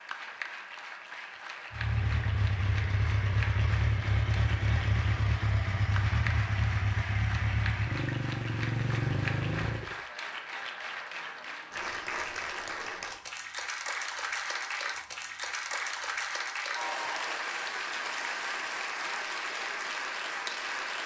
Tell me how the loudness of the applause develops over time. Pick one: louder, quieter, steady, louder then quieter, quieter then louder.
louder.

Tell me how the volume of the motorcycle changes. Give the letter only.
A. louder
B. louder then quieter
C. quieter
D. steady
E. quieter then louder
D.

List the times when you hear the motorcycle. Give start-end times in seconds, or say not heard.
1.7-10.0.